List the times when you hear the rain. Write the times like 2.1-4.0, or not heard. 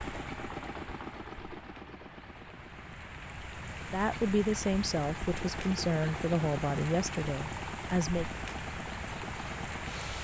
0.0-10.1.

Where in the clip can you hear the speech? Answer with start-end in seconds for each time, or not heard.
3.9-8.2.